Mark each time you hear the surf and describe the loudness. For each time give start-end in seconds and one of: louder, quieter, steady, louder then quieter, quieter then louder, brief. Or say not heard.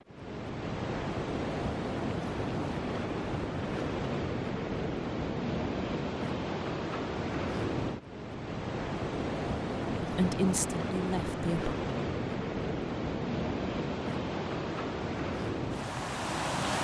0.0-16.8 steady.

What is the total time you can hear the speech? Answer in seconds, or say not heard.
2 s.